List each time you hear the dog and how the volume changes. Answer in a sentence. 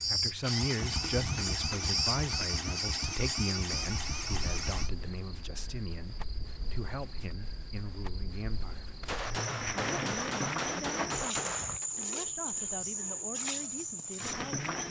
The dog can't be heard in this clip.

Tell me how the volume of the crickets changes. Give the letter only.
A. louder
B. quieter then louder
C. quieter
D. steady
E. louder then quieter
B.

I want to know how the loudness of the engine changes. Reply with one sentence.
The volume of the engine stays about the same.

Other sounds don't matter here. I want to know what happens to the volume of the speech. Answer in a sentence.
The volume of the speech goes down.